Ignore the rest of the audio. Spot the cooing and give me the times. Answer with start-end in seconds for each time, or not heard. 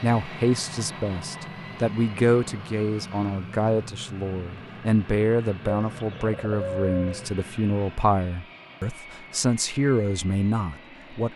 5.7-7.2.